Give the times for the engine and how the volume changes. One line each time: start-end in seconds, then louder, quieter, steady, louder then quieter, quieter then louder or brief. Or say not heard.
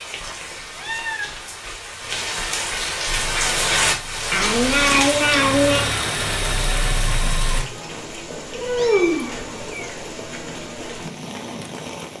3.0-7.7 louder.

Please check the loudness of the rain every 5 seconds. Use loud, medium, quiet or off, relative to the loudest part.
loud, medium, medium.